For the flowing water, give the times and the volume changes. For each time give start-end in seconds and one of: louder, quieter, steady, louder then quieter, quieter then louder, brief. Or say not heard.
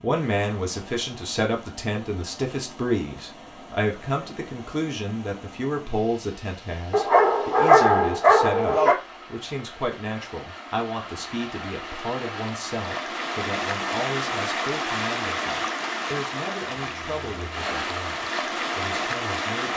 0.0-19.7 louder.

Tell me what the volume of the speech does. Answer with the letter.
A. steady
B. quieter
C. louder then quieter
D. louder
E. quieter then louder
B.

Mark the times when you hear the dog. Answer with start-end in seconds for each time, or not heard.
6.9-8.9.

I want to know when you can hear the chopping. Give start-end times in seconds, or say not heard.
not heard.